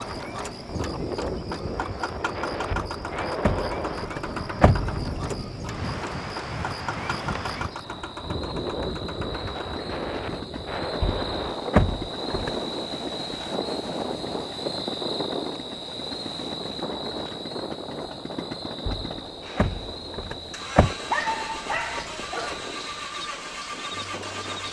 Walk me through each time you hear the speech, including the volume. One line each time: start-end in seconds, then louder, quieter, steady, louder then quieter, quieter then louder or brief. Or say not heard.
not heard.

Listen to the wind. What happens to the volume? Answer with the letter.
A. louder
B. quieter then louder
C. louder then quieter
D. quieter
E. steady
D.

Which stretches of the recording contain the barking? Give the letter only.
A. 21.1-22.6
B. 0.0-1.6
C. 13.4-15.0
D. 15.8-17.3
A.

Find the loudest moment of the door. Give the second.
12 s.